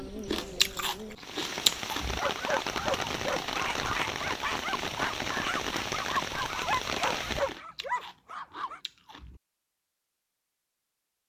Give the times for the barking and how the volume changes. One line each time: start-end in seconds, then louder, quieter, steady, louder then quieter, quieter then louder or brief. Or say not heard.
2.1-8.8 steady.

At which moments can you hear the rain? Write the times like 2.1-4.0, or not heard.
0.0-7.6.